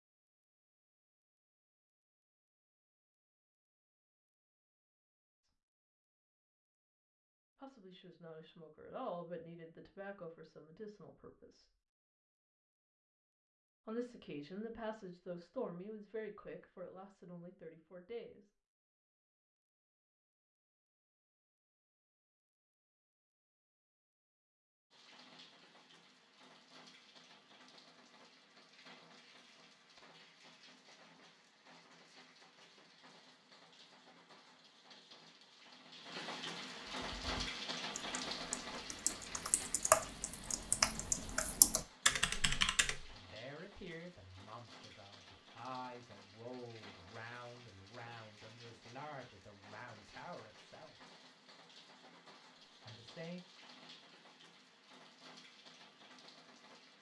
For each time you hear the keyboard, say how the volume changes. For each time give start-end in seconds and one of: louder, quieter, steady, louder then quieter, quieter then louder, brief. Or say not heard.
36.9-43.0 louder.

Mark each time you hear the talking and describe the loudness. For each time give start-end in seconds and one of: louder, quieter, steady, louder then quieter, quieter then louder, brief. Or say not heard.
7.5-11.7 louder then quieter
13.8-18.5 quieter
43.1-51.0 steady
52.9-53.4 brief.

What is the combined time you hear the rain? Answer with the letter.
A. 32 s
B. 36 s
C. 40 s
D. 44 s
A.